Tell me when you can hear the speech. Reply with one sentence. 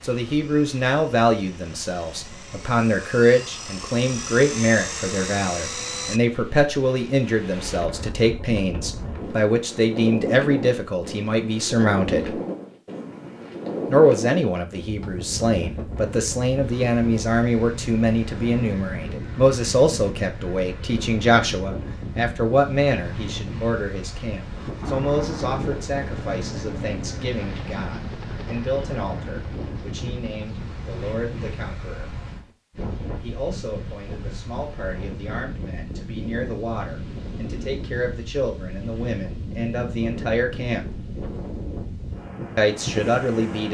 The speech can be heard from 0.0 to 12.4 s, from 13.8 to 32.1 s, from 33.2 to 41.0 s and from 42.5 to 43.6 s.